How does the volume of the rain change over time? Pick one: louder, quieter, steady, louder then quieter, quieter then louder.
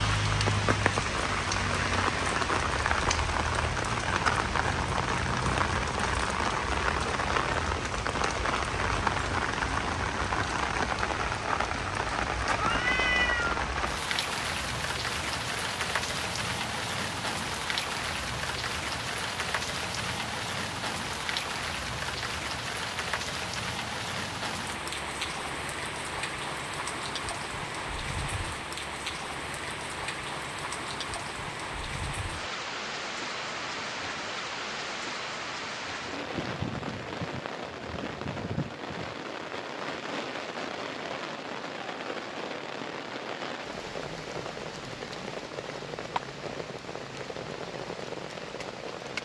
quieter.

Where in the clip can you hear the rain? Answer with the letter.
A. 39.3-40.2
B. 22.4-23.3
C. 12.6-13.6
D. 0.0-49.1
D.